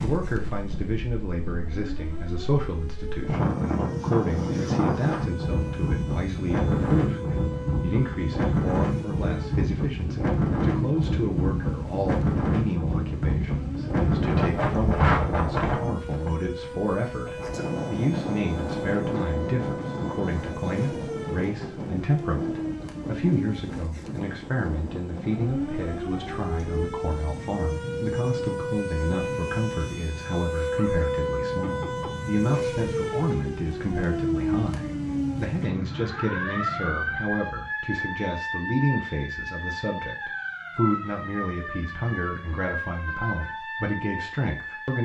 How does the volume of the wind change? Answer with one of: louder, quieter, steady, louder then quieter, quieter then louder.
quieter.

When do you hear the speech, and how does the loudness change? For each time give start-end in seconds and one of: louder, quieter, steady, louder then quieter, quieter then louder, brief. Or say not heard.
0.0-45.0 steady.